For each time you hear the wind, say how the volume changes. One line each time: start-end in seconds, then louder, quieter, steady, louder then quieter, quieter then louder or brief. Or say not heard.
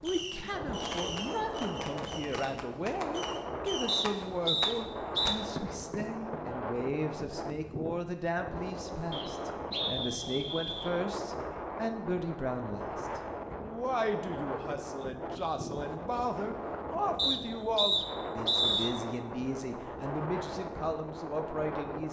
0.0-22.0 steady.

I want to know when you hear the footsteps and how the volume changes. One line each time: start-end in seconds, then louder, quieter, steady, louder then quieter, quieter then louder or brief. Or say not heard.
not heard.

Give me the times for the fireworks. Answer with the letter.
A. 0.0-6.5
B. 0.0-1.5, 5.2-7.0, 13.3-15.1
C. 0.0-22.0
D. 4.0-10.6
A.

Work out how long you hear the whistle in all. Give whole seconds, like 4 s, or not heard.
5 s.